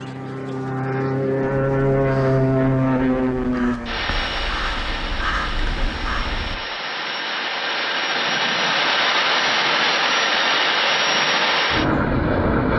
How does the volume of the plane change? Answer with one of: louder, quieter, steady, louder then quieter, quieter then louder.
quieter then louder.